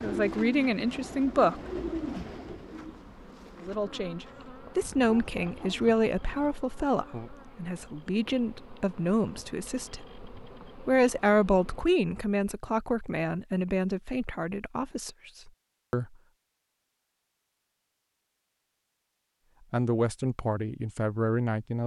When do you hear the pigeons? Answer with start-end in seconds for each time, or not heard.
0.0-4.5.